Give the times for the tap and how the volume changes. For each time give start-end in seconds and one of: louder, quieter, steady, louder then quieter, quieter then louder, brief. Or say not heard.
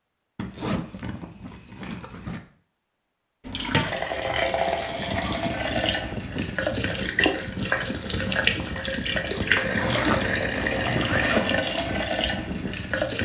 3.5-13.2 steady.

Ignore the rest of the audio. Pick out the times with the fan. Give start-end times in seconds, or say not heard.
4.7-13.2.